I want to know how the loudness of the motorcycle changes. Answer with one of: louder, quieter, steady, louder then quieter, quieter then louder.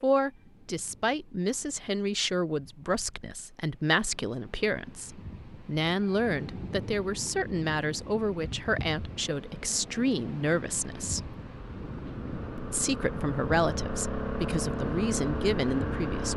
louder.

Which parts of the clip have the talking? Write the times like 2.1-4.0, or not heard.
0.0-11.3, 12.6-16.3.